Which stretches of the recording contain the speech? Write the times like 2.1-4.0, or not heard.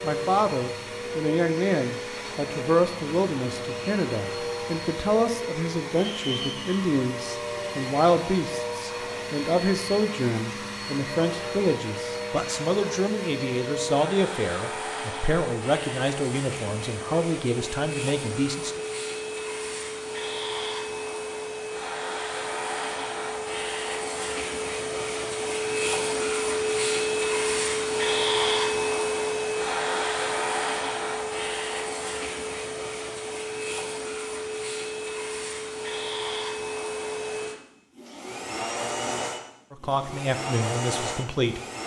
0.0-18.8, 39.7-41.6.